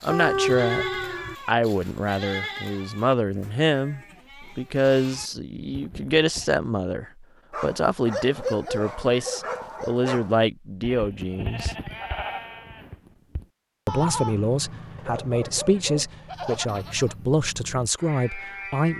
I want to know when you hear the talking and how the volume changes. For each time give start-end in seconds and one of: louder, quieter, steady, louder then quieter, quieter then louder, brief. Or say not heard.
0.0-0.8 brief
1.4-11.8 steady
13.8-18.9 steady.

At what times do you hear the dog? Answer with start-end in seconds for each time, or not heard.
0.1-1.4, 7.5-10.4, 14.9-16.8.